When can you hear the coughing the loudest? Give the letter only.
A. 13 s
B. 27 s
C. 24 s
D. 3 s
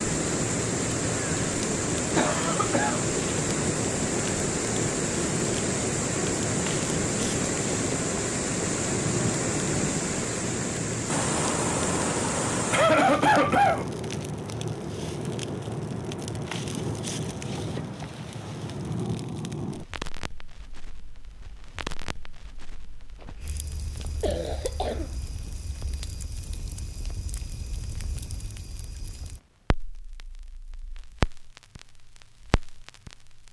A.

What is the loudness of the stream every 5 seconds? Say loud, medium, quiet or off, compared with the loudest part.
loud, loud, loud, quiet, off, off, off.